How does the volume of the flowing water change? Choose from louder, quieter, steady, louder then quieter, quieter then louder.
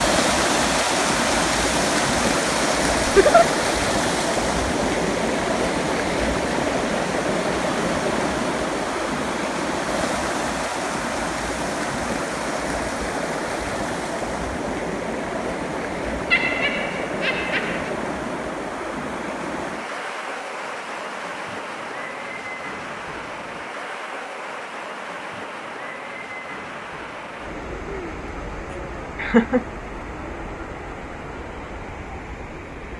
quieter.